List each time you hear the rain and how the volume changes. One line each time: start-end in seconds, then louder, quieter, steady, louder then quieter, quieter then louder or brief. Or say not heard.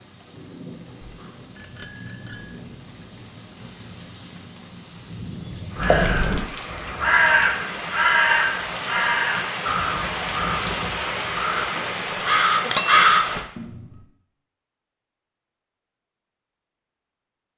0.0-13.4 louder.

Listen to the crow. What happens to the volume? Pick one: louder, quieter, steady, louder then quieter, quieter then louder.
quieter then louder.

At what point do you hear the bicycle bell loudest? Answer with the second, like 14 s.
13 s.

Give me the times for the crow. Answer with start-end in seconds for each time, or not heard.
5.8-13.8.